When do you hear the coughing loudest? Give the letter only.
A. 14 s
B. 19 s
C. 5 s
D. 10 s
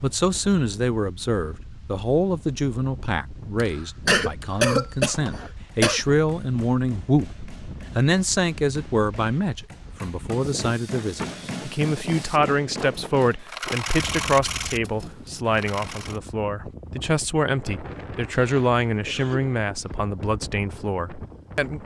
C.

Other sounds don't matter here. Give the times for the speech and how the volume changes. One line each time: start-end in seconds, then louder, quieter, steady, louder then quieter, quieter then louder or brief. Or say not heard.
0.0-21.8 steady.